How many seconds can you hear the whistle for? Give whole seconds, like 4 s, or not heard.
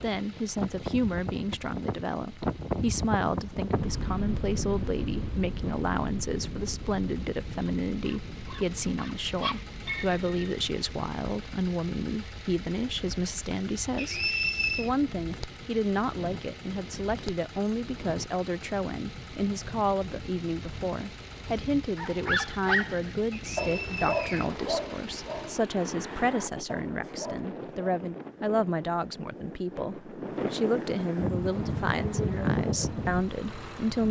2 s.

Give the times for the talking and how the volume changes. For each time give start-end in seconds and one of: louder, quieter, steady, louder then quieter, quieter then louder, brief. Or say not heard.
0.0-34.0 steady.